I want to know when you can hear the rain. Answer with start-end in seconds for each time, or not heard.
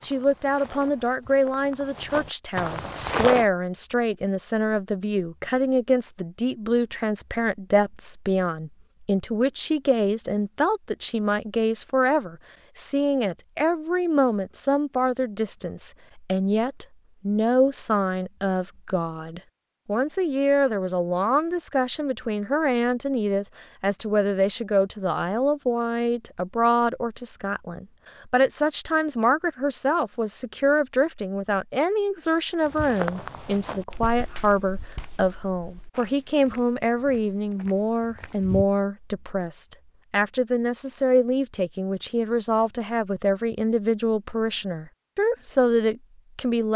not heard.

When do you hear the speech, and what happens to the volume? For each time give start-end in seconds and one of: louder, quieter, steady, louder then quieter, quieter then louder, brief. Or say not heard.
0.0-46.7 steady.